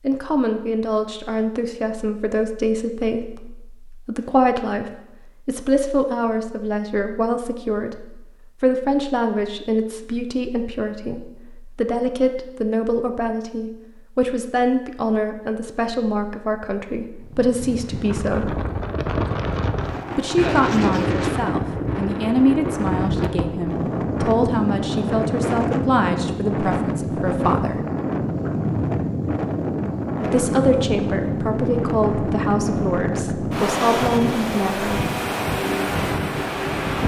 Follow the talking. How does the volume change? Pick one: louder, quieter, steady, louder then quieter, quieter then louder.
steady.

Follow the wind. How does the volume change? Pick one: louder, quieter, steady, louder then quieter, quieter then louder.
steady.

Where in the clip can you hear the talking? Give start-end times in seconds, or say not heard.
0.0-18.5, 20.1-27.8, 30.2-35.0.